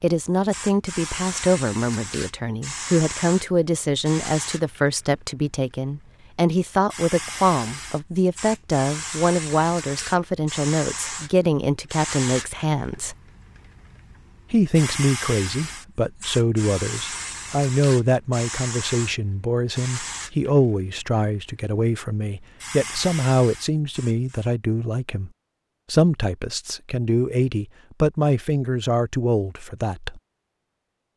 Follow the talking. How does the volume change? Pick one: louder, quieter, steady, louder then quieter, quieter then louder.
steady.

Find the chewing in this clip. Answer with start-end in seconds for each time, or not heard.
not heard.